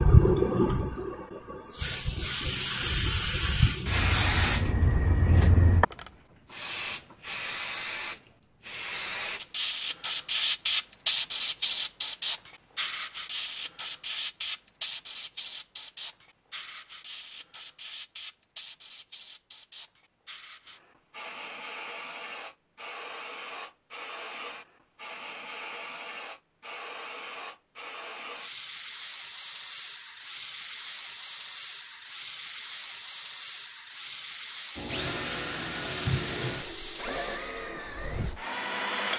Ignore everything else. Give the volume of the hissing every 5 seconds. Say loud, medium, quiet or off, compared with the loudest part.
loud, loud, loud, quiet, quiet, quiet, quiet, quiet.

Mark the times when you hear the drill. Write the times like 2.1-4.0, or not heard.
34.8-39.1.